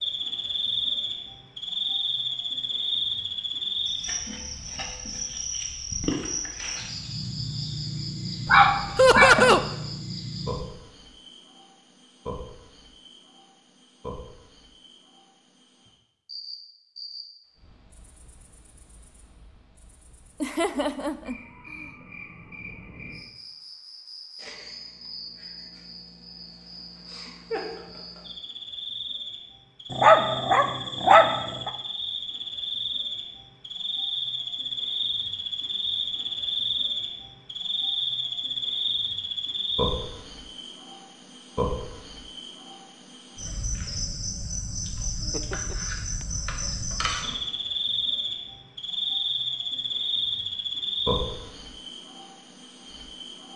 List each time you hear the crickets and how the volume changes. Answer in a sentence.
You can hear the crickets from 0.0 to 53.5 s, getting quieter then louder.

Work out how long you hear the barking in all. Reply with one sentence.
You can hear the barking for 3 seconds altogether.